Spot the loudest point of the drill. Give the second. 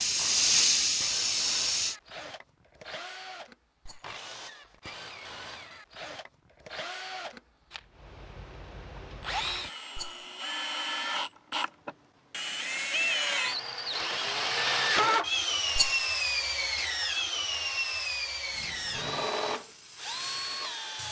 15 s.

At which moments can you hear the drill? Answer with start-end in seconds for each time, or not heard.
0.0-21.0.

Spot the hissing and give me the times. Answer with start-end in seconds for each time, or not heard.
0.0-1.9, 18.5-21.0.